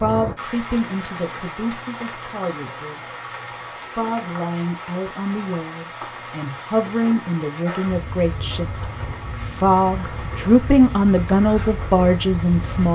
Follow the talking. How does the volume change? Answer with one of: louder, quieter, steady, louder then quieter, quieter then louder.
louder.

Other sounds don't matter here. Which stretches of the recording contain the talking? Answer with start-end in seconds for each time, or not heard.
0.0-3.2, 3.8-12.9.